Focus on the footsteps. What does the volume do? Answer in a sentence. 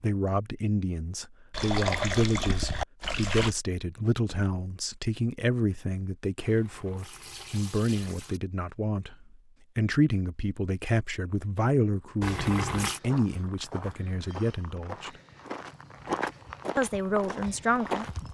The loudness of the footsteps goes up, then down.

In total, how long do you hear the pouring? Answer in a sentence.
The pouring can be heard for 5 seconds in total.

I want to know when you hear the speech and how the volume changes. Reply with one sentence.
You can hear the speech from 0.0 to 15.1 s, at a steady volume; and briefly from 16.8 to 18.1 s.